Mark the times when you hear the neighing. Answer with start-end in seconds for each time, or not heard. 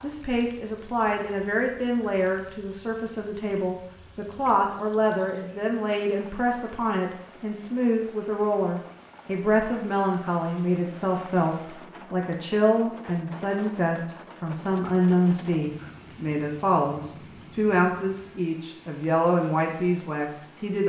not heard.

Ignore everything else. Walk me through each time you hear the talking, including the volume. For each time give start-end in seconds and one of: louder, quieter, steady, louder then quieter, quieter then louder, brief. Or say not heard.
0.0-20.8 steady.